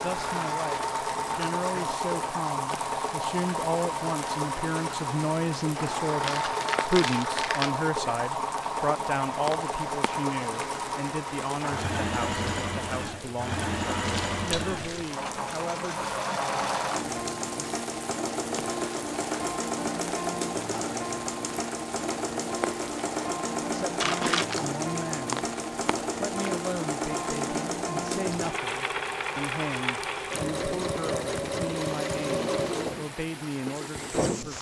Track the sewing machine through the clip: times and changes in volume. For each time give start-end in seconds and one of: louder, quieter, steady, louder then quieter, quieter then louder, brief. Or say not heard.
0.0-34.5 steady.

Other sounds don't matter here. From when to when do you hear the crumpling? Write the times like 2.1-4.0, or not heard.
6.2-7.8, 14.0-15.2, 24.0-24.6.